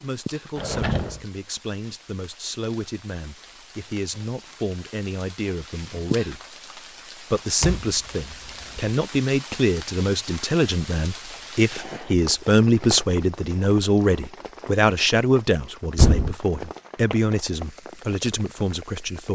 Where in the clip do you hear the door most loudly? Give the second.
16 s.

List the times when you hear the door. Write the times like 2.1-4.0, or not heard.
0.6-1.2, 7.6-8.9, 15.9-16.4.